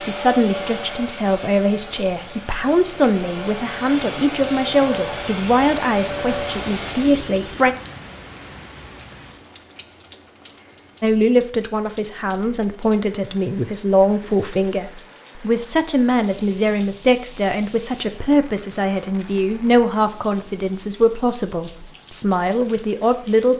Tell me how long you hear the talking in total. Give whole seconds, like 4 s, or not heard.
20 s.